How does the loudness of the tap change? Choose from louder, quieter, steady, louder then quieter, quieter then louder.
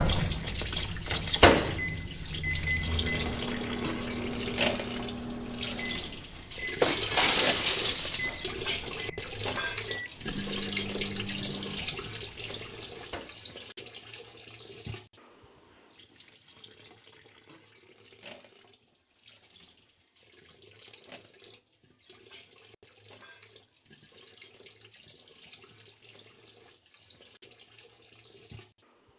quieter.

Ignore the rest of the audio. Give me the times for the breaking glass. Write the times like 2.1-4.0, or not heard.
6.8-8.4.